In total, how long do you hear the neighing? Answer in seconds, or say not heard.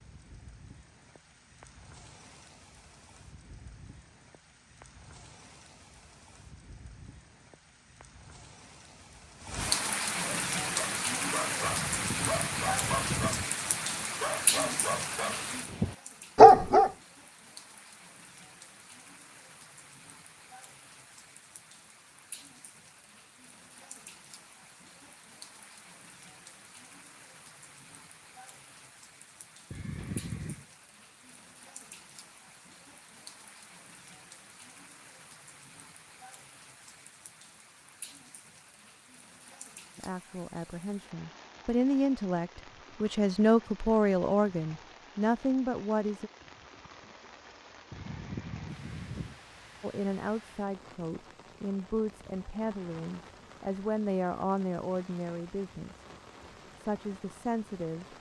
4 s.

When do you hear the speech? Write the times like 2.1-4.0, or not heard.
40.0-46.3, 49.8-56.0, 56.8-58.1.